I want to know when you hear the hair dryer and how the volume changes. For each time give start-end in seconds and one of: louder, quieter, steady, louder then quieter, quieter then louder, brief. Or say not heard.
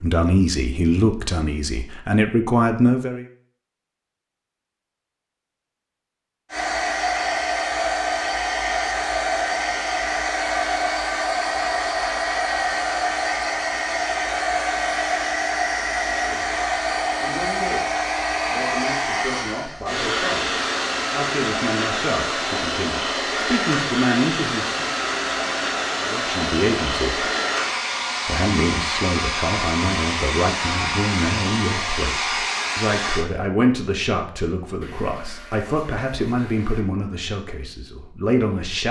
6.5-33.2 steady.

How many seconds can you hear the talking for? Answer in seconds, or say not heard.
24 s.